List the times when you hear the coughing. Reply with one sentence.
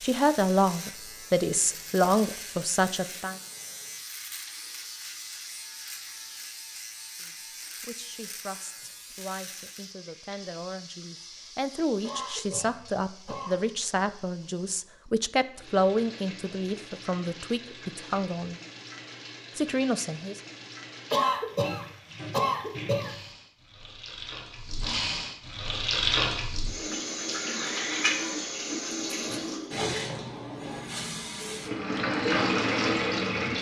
You can hear the coughing from 12.0 to 13.7 s and from 21.1 to 23.2 s.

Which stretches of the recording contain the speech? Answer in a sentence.
The speech can be heard from 0.0 to 3.4 s, from 7.2 to 18.6 s and from 19.6 to 20.4 s.